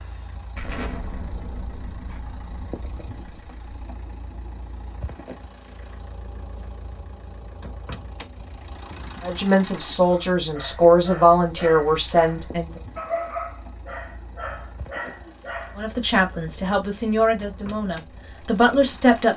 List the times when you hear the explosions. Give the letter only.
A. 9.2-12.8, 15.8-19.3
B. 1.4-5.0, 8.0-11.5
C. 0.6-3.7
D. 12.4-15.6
C.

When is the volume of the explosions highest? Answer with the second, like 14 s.
1 s.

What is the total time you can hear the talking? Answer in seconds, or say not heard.
7 s.